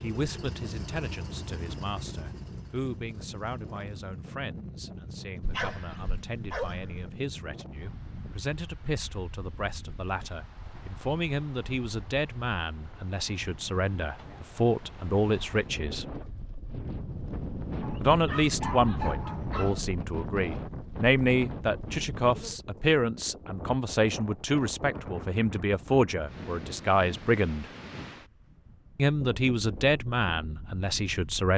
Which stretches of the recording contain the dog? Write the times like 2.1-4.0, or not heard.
5.4-7.1, 17.8-19.9.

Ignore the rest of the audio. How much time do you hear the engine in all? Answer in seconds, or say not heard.
4 s.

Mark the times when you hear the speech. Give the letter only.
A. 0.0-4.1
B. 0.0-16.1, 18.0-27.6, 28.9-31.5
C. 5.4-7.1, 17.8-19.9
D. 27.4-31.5
B.